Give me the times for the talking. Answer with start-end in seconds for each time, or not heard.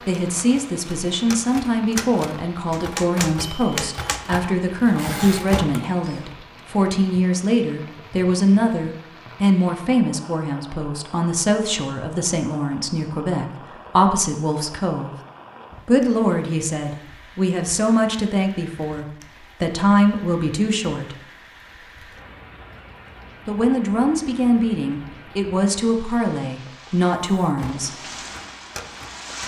0.0-15.1, 15.8-21.1, 23.4-28.1.